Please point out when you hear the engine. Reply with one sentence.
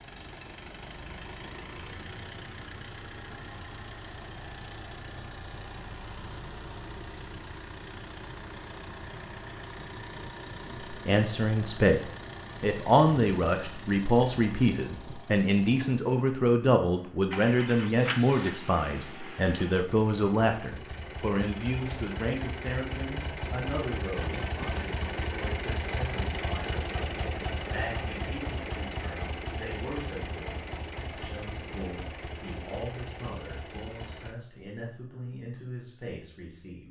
The engine can be heard from 0.0 to 34.4 s.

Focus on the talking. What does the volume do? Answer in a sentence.
The loudness of the talking goes down.